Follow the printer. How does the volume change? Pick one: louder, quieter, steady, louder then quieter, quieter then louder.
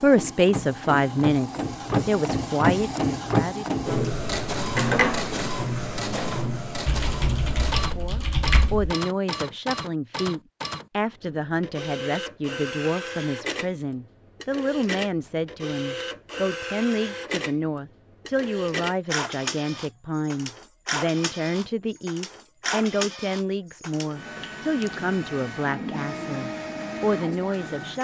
quieter.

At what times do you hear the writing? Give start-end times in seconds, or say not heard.
not heard.